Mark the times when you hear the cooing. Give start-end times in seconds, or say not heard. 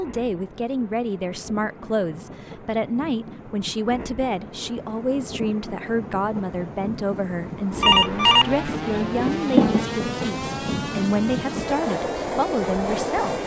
not heard.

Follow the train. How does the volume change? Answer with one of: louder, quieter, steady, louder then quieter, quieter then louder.
louder.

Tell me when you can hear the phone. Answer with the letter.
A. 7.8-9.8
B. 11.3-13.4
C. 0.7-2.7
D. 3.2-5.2
A.